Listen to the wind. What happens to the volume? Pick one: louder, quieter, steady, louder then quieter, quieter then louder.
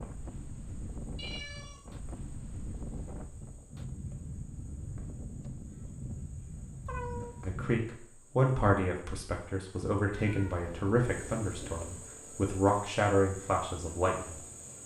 steady.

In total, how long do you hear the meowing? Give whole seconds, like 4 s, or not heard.
3 s.